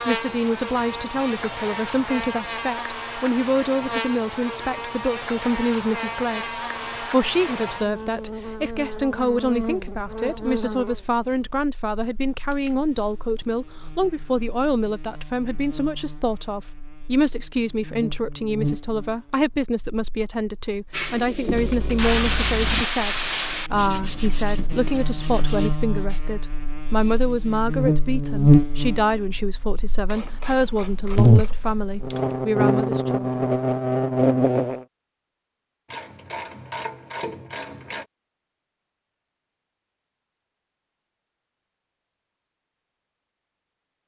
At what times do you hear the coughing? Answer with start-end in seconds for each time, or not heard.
not heard.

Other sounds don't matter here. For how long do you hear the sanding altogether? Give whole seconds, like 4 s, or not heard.
5 s.